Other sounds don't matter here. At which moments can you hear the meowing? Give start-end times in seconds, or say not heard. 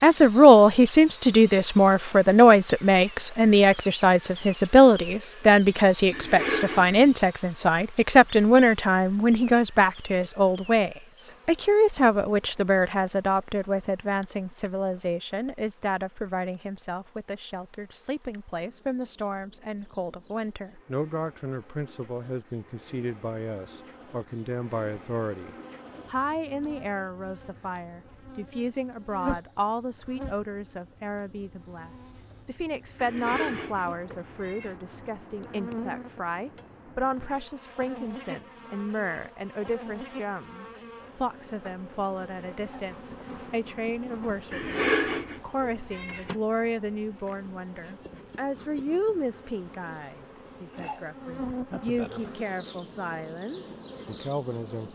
6.1-7.0, 33.0-34.8, 44.5-46.3.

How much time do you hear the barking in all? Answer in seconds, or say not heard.
not heard.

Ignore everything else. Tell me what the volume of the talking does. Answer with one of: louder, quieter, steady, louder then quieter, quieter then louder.
quieter.